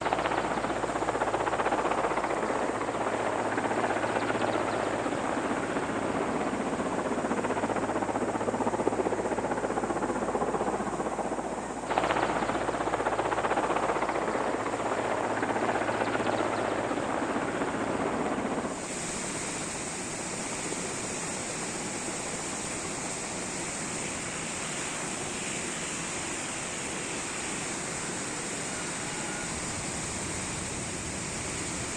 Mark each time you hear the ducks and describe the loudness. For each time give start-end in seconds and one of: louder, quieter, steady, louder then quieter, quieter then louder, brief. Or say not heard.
not heard.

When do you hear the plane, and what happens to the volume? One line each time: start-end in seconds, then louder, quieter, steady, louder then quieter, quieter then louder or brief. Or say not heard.
0.0-31.9 quieter.